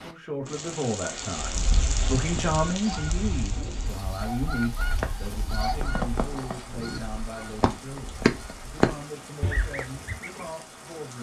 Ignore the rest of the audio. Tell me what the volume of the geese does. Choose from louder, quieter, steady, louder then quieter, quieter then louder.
louder.